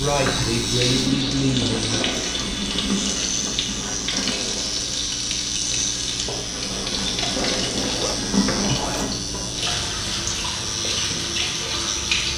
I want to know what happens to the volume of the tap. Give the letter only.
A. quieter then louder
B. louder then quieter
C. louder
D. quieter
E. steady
E.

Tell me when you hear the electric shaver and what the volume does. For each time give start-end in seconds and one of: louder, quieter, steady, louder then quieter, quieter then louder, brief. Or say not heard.
0.0-12.3 steady.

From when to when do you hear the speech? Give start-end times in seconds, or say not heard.
0.0-2.0.